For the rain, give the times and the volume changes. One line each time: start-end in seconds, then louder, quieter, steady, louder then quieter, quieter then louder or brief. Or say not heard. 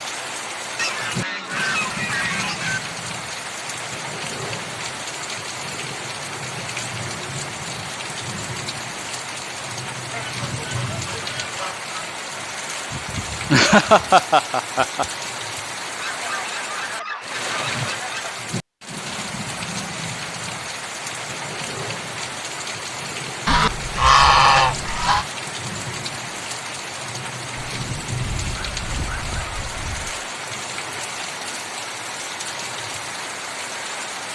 0.0-34.3 steady.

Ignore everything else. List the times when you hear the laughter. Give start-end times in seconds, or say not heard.
12.9-15.1.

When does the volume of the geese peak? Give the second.
24 s.